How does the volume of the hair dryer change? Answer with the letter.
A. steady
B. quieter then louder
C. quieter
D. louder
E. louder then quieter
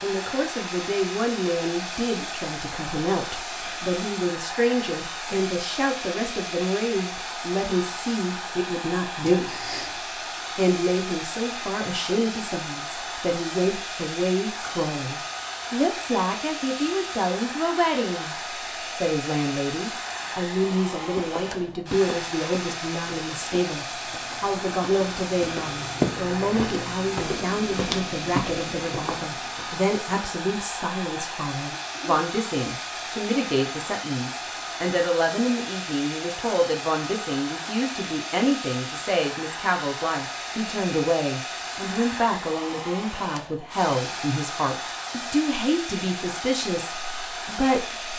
A.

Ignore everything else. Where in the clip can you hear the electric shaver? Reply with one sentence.
You can't hear the electric shaver here.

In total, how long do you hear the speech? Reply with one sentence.
The speech can be heard for 47 seconds in total.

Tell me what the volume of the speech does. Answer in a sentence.
The loudness of the speech stays about the same.